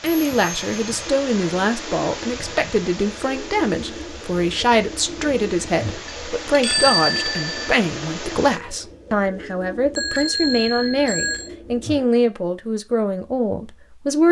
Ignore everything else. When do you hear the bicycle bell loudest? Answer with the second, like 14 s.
7 s.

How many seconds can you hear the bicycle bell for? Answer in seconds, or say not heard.
4 s.